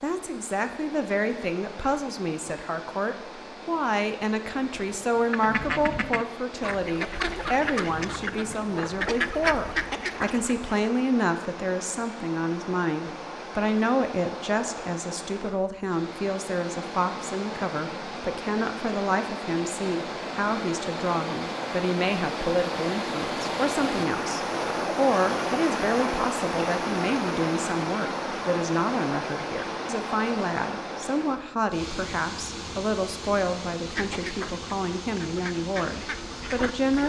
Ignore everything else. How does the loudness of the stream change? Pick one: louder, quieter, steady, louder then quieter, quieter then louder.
louder then quieter.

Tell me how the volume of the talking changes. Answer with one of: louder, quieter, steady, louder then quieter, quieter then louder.
steady.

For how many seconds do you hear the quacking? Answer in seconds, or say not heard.
9 s.